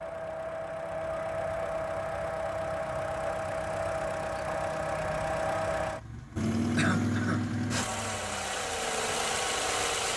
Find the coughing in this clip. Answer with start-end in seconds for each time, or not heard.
6.8-7.4.